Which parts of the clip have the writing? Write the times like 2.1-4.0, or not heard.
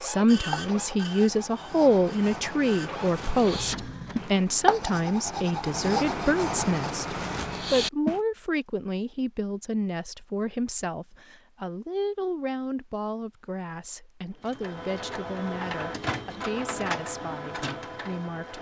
0.5-8.2.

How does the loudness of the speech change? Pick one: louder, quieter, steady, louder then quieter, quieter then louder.
quieter.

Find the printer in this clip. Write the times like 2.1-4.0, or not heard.
0.0-4.4, 14.3-18.5.